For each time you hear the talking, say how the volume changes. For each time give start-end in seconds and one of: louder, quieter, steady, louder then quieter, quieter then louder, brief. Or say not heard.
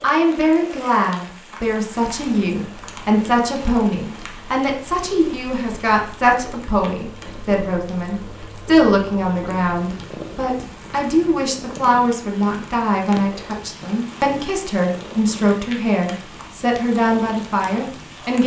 0.0-18.4 steady.